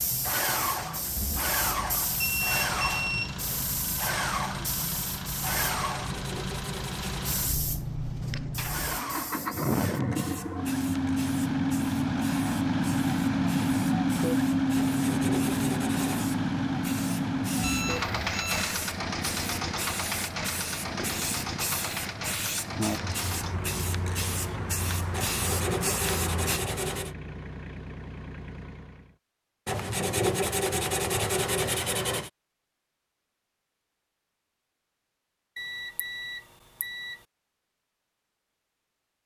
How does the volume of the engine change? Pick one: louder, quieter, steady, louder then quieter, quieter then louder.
louder then quieter.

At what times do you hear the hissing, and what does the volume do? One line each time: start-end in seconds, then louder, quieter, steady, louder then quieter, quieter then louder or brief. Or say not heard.
0.0-26.6 quieter then louder.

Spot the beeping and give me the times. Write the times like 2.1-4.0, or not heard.
2.2-3.4, 17.6-18.7, 35.5-37.1.